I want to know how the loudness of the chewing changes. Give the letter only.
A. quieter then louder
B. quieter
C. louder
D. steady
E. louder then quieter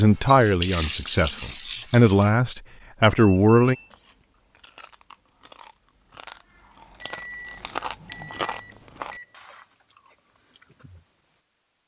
E.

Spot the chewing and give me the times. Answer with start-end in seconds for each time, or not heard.
3.6-11.2.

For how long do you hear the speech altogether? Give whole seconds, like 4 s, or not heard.
4 s.